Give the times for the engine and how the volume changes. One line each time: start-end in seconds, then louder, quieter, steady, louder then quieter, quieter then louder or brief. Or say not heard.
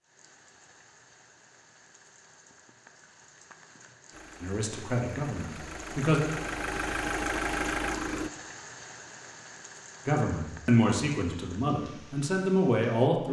4.1-8.3 louder.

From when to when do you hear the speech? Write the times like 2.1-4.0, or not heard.
4.4-6.2, 10.1-13.2.